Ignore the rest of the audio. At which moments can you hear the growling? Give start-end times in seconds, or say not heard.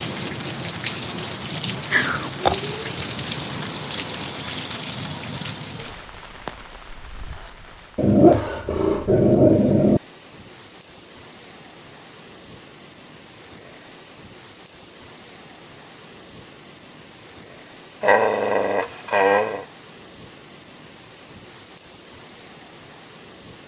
1.9-2.5, 8.0-10.0, 18.0-19.6.